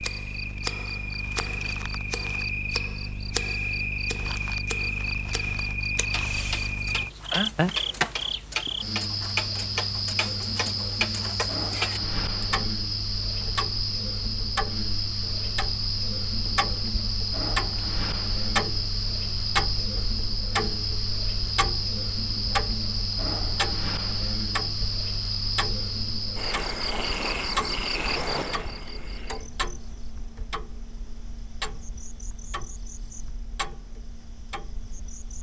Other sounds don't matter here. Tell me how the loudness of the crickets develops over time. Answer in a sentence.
The loudness of the crickets goes down.